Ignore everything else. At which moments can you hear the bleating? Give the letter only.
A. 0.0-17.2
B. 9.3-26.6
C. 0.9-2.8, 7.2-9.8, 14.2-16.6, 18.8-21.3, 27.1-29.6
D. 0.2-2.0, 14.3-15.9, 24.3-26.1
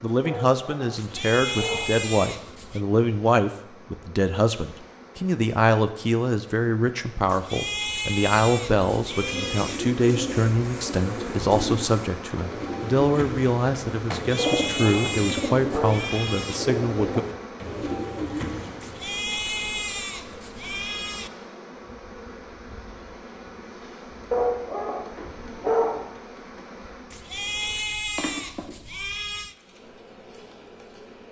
C.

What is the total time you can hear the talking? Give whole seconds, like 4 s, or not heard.
17 s.